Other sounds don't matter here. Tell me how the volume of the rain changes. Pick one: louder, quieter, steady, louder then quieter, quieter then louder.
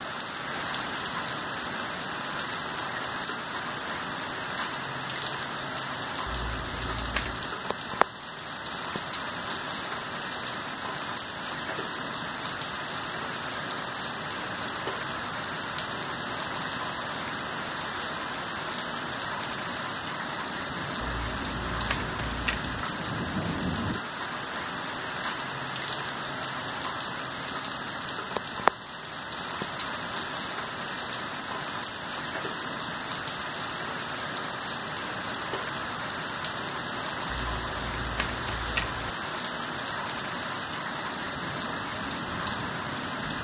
steady.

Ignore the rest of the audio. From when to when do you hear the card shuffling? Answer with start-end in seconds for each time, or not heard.
6.2-7.5, 21.0-22.8, 37.2-39.1.